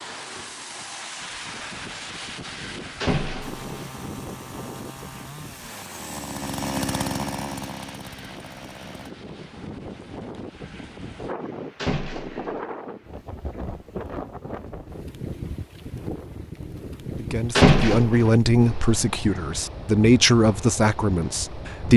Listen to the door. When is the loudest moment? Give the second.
18 s.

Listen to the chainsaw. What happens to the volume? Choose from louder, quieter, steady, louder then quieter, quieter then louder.
louder then quieter.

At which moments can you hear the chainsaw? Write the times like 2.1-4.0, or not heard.
3.4-9.1.